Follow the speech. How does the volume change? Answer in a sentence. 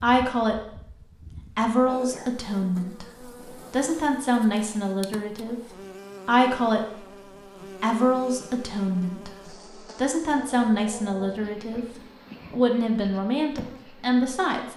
The loudness of the speech stays about the same.